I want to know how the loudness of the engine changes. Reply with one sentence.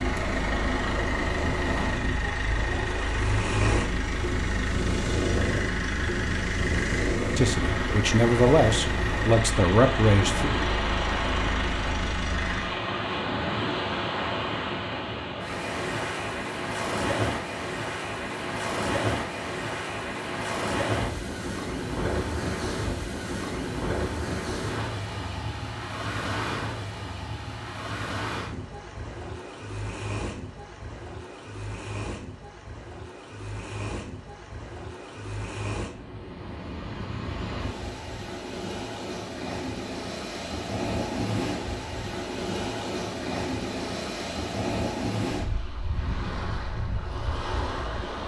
The loudness of the engine stays about the same.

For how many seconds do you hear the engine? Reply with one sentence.
You can hear the engine for 13 seconds altogether.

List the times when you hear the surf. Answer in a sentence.
You can hear the surf from 0.0 to 48.2 s.